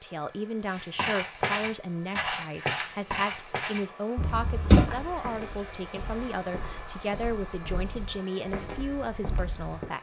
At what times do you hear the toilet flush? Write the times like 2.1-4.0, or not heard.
4.2-4.8.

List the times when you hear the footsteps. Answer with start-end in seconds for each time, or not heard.
0.7-9.9.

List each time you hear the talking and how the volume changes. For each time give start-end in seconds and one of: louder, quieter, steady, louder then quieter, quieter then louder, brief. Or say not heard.
0.0-9.9 steady.